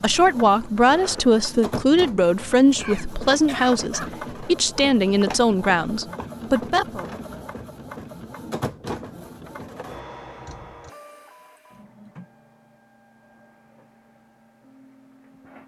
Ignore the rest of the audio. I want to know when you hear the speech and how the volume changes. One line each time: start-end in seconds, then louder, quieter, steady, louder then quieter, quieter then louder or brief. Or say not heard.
0.0-7.0 steady.